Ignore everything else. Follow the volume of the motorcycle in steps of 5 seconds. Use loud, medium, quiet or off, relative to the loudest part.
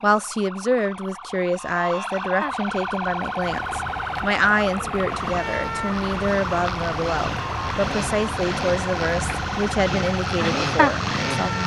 off, medium, loud.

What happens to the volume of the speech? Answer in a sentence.
The volume of the speech stays about the same.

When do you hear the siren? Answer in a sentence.
The siren can be heard from 0.0 to 11.6 s.